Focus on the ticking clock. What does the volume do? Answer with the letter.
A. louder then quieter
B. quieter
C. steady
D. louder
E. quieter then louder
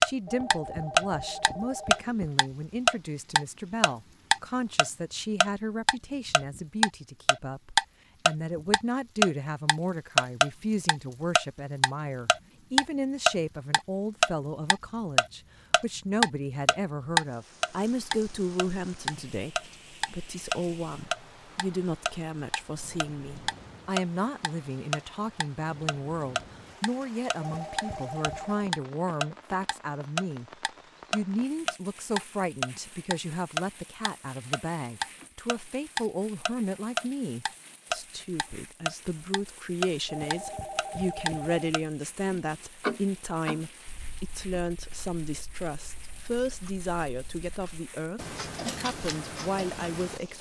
B.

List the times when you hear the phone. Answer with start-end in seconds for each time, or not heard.
0.2-2.3, 27.4-28.7, 40.0-41.7.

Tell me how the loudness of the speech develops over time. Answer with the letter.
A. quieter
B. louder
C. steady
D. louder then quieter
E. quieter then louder
C.